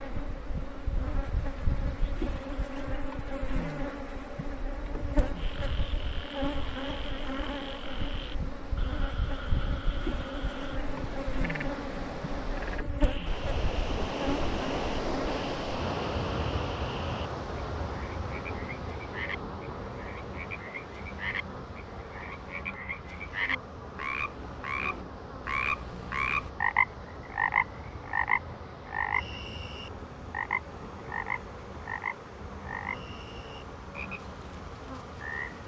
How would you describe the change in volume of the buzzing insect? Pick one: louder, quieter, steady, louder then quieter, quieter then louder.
quieter.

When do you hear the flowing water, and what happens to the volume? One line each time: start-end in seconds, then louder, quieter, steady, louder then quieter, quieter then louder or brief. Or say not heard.
0.0-35.6 louder then quieter.